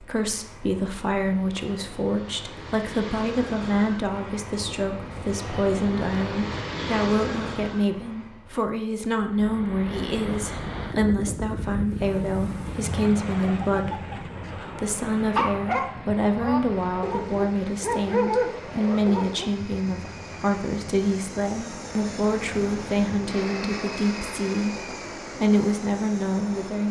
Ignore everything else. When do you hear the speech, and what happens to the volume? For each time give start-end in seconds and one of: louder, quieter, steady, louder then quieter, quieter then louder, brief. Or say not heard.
0.0-26.8 steady.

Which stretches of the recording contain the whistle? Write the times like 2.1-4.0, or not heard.
not heard.